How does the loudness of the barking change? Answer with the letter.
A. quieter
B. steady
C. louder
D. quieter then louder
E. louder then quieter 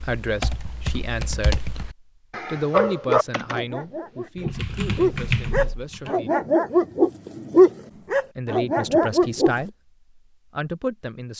E.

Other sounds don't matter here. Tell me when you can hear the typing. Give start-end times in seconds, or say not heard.
0.0-6.1.